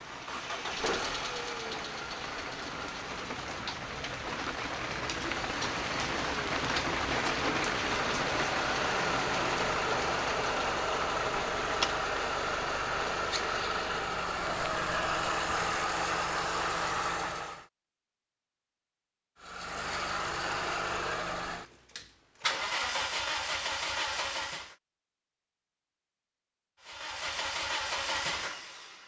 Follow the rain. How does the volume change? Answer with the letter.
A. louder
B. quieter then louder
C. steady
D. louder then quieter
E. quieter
D.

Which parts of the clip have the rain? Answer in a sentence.
The rain can be heard from 0.0 to 15.8 s.